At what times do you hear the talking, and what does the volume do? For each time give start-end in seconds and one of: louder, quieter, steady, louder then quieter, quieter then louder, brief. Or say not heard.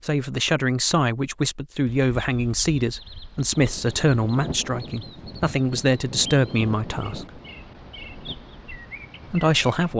0.0-7.4 steady
9.3-9.9 brief.